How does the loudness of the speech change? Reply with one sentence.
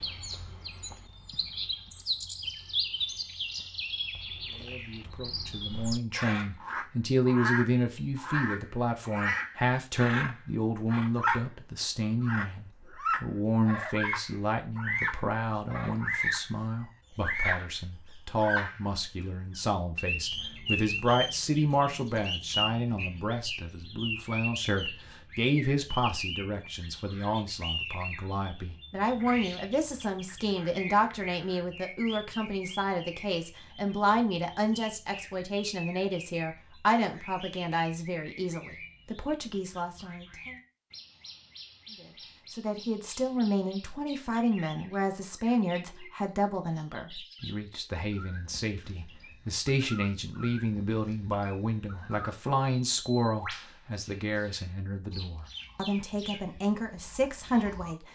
The loudness of the speech stays about the same.